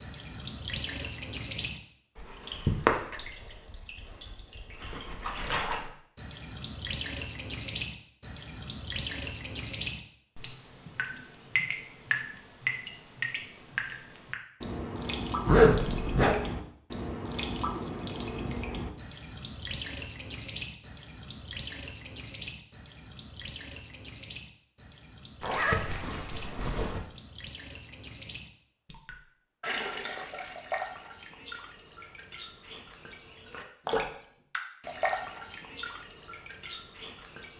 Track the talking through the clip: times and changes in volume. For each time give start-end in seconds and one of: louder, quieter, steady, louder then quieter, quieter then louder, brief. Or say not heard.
not heard.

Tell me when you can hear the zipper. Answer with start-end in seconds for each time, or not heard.
15.4-16.4, 25.4-27.0.